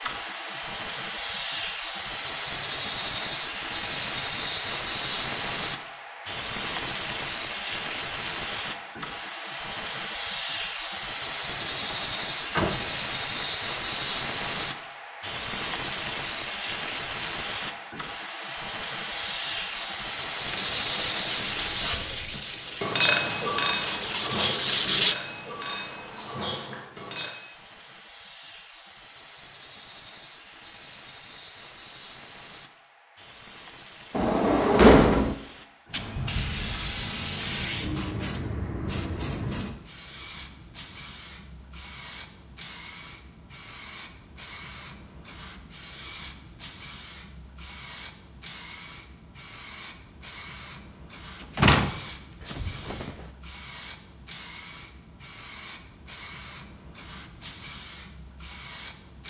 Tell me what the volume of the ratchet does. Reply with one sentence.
The volume of the ratchet goes up, then down.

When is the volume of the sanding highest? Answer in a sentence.
The volume of the sanding peaks at 25 seconds.